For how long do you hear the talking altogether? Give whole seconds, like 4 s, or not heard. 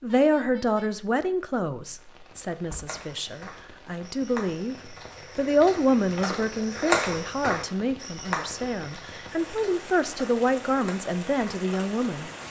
12 s.